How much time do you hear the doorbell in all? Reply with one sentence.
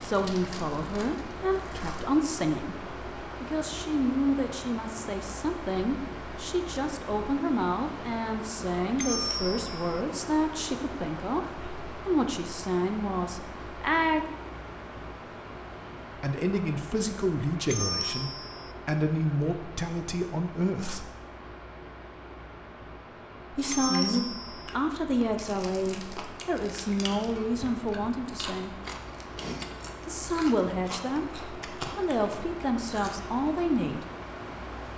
The doorbell can be heard for 3 seconds in total.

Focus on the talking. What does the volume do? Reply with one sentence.
The loudness of the talking stays about the same.